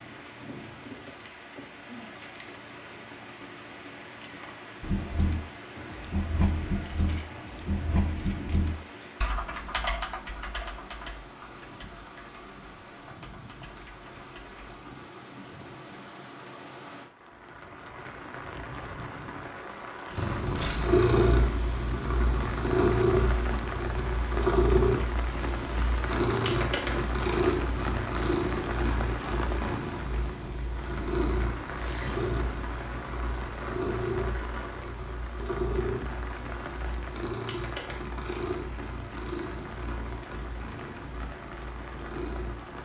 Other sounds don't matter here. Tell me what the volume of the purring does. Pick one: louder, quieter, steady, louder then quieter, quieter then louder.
quieter.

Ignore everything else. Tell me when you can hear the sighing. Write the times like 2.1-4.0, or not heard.
not heard.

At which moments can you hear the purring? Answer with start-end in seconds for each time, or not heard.
20.1-42.8.